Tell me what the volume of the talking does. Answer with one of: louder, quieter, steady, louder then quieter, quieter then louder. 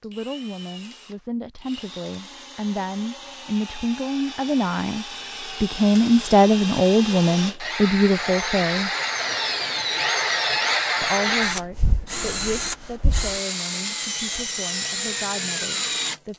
louder then quieter.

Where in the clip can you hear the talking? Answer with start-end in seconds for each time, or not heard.
0.0-8.9, 11.0-16.3.